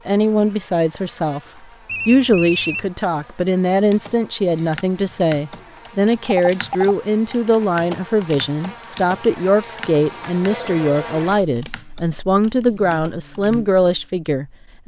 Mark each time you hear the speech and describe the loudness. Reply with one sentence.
The speech can be heard briefly from 0.1 to 1.4 s; and from 2.0 to 14.8 s, at a steady volume.